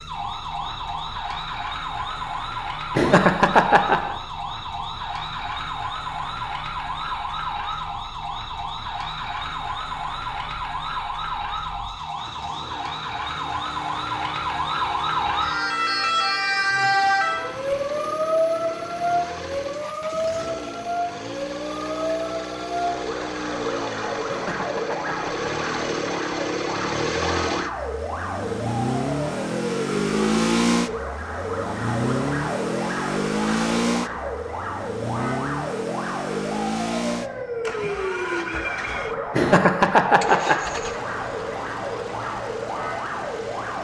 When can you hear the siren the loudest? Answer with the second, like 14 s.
17 s.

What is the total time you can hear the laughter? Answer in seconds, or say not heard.
4 s.